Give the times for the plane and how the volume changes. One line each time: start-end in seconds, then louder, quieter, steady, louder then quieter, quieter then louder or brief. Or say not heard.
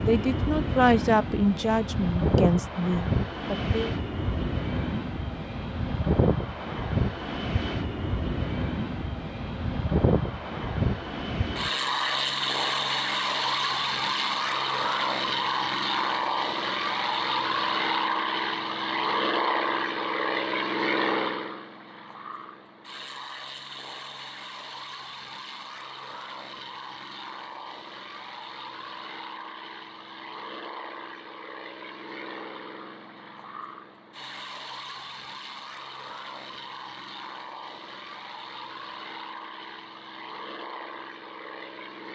0.0-42.0 quieter.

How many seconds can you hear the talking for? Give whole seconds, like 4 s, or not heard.
4 s.